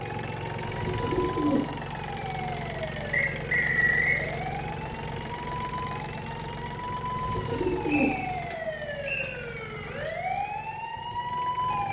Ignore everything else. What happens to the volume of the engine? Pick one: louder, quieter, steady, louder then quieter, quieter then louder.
quieter.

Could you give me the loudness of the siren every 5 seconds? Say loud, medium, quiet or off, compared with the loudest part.
medium, medium, loud.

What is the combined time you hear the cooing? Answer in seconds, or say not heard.
2 s.